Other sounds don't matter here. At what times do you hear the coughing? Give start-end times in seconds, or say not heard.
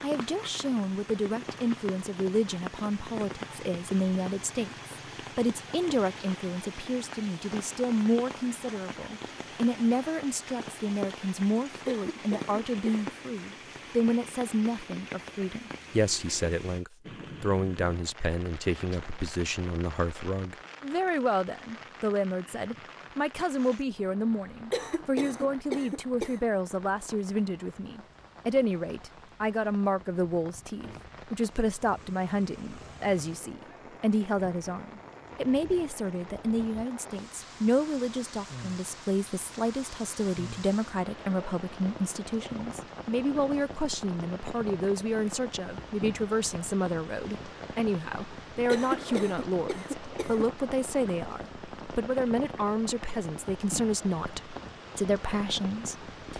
11.8-13.1, 24.7-26.4, 48.6-50.5.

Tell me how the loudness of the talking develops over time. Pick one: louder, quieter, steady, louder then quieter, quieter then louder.
steady.